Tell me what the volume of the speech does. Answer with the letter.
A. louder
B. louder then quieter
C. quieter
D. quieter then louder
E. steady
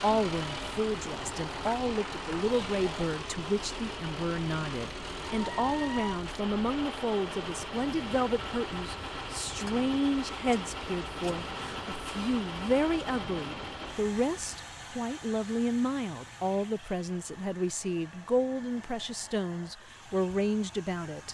E.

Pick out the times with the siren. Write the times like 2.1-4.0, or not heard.
not heard.